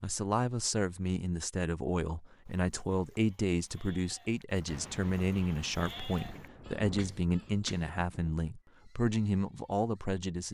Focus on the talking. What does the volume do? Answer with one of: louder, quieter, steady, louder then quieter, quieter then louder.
steady.